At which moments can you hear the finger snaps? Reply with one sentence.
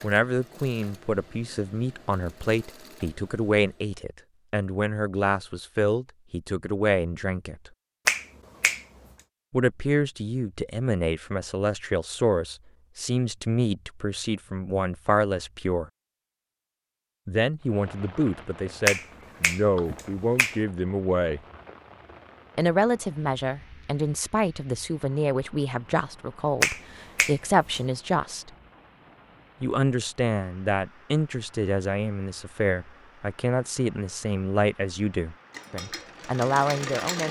The finger snaps can be heard from 8.1 to 8.8 s, from 18.9 to 20.6 s and from 26.6 to 27.8 s.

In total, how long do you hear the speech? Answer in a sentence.
The speech can be heard for 32 seconds in total.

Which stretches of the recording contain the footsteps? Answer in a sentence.
The footsteps can't be heard in this clip.